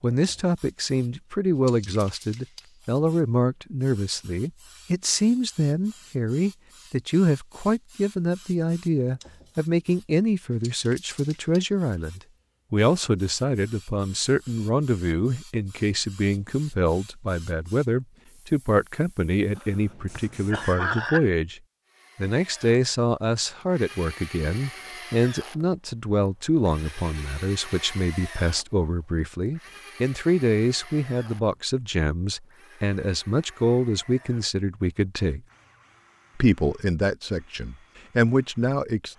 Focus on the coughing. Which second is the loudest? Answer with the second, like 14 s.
21 s.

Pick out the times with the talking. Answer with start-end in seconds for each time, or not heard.
0.0-35.4, 36.4-39.1.